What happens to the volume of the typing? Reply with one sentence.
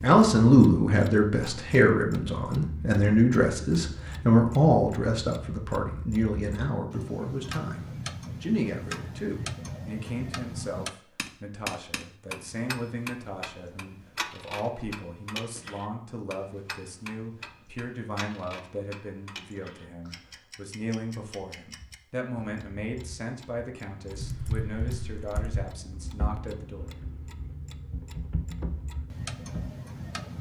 The loudness of the typing goes down, then up.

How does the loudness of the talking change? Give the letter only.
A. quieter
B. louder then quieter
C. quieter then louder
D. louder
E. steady
A.